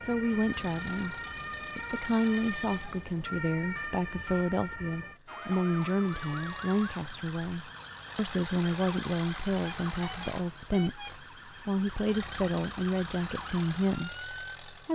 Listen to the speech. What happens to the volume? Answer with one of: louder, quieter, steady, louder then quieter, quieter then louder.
steady.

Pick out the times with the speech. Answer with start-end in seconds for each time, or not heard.
0.0-14.9.